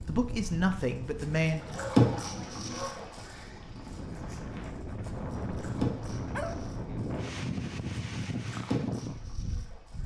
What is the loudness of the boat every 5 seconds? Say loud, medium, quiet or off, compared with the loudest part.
loud, medium.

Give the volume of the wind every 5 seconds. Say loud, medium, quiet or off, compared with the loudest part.
medium, loud.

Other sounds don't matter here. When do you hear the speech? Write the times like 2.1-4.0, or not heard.
0.1-1.6.